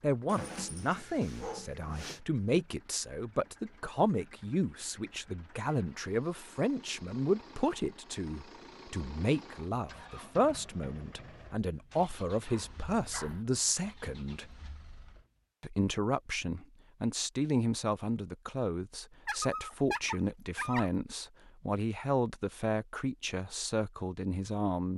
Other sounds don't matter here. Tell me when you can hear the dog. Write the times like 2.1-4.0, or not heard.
0.2-2.2, 12.4-13.4, 19.2-20.9.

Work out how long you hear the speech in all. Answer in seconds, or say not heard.
24 s.